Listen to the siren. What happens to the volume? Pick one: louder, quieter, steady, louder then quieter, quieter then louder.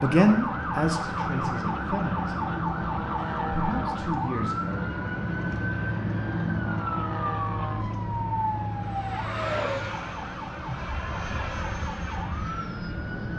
quieter.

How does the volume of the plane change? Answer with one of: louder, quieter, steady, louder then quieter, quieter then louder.
steady.